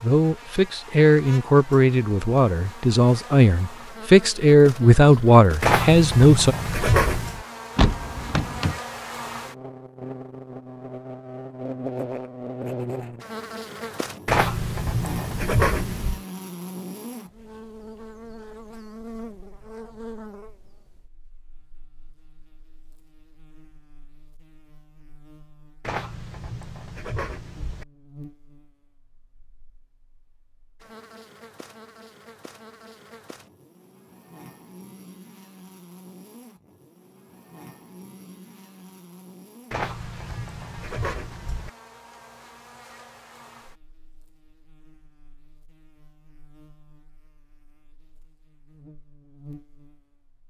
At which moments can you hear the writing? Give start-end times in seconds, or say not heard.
5.6-7.5, 14.2-16.2, 25.8-27.9, 39.7-41.7.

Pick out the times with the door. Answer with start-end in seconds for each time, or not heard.
7.8-8.8.